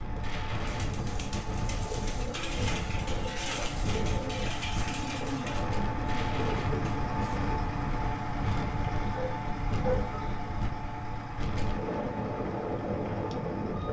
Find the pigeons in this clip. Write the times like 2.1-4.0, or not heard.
0.7-7.5.